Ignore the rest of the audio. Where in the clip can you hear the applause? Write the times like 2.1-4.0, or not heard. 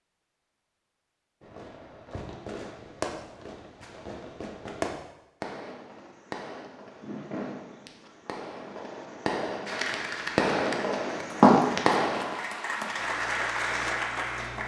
9.7-14.6.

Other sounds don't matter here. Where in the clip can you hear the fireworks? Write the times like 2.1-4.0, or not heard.
1.4-12.3.